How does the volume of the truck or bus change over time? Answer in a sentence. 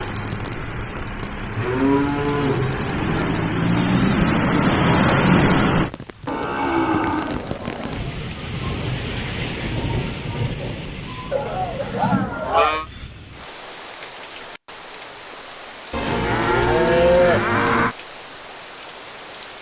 The loudness of the truck or bus goes up.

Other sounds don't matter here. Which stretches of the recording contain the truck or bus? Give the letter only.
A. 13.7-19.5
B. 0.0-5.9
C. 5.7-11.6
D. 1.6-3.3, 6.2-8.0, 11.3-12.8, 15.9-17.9
B.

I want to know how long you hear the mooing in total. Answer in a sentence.
The mooing can be heard for 7 seconds in total.